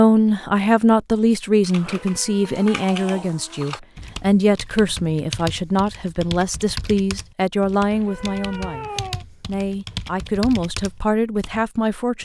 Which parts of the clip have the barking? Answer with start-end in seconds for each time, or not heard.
not heard.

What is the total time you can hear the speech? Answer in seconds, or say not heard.
12 s.